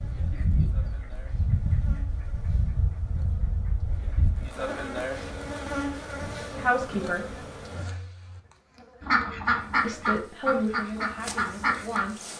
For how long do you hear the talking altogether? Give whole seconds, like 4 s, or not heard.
3 s.